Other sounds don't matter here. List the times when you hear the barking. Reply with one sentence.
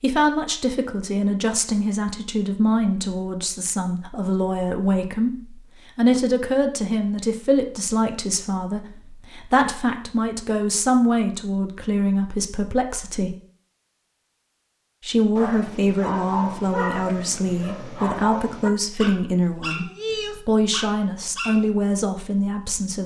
You can hear the barking from 15.3 to 21.7 s.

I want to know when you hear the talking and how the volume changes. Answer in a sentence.
You can hear the talking from 0.0 to 13.3 s, at a steady volume; and from 15.0 to 23.0 s, at a steady volume.